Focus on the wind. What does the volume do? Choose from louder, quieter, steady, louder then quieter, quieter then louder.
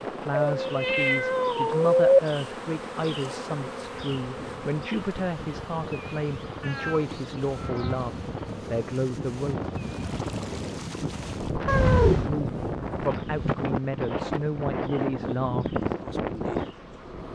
louder.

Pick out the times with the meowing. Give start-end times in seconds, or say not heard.
0.5-2.0, 6.6-8.1, 11.7-12.3.